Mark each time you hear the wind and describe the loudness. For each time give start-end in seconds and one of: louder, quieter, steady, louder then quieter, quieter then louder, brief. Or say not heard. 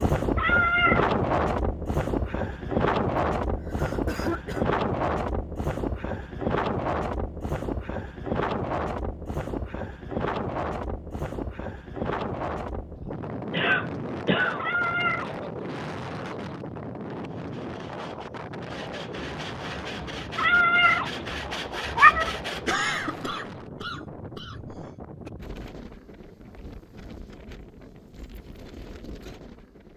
0.0-29.9 quieter.